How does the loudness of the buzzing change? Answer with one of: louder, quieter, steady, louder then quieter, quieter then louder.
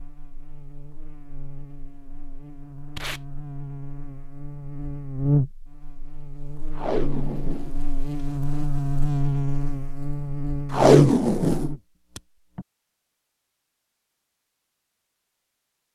louder.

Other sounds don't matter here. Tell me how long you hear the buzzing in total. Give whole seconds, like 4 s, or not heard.
12 s.